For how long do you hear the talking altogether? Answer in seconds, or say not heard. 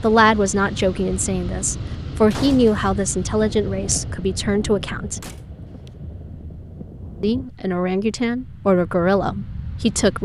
8 s.